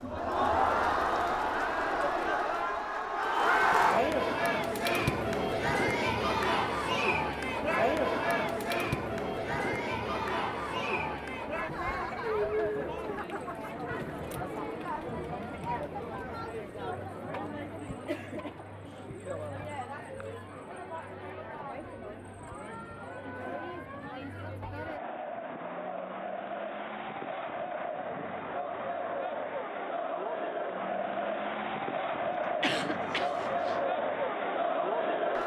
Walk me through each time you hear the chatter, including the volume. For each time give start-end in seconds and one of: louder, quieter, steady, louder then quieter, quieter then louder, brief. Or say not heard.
0.0-35.4 quieter then louder.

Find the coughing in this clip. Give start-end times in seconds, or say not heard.
32.6-33.8.